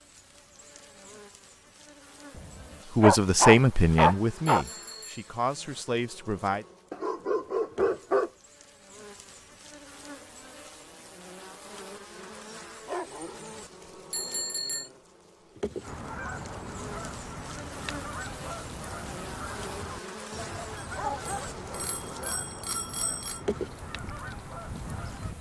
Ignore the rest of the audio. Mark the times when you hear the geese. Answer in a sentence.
You can hear the geese from 15.8 to 25.3 s.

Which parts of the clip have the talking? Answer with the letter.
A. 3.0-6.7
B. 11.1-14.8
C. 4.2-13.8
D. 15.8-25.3
A.